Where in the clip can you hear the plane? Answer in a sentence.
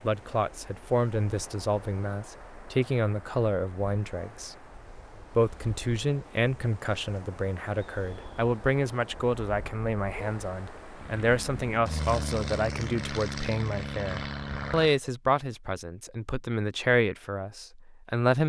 You can hear the plane from 10.9 to 15.0 s.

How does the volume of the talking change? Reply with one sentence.
The loudness of the talking stays about the same.